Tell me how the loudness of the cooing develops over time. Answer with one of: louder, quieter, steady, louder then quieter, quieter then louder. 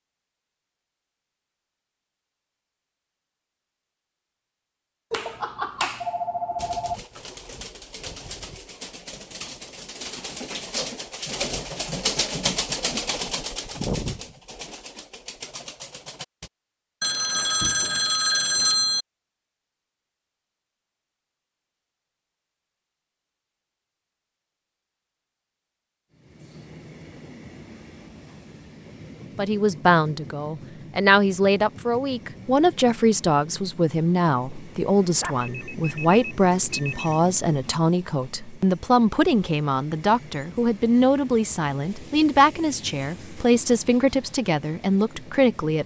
louder then quieter.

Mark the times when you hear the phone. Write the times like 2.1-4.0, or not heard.
5.1-7.0, 17.0-19.1, 35.1-37.1.